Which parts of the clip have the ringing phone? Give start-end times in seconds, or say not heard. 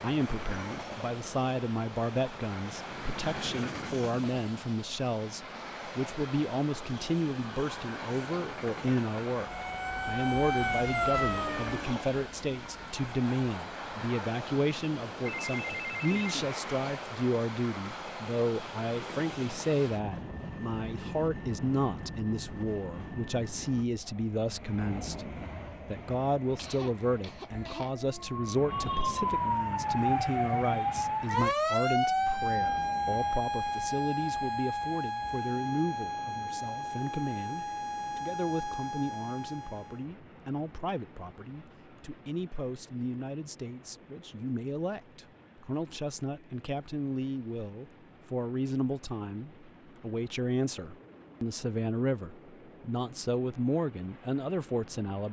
15.2-16.5.